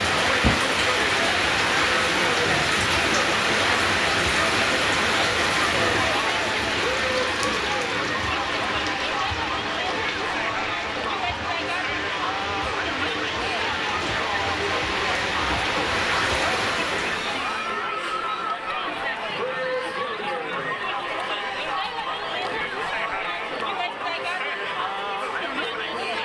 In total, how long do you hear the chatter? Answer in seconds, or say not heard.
26 s.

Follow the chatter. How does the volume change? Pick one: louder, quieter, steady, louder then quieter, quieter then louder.
steady.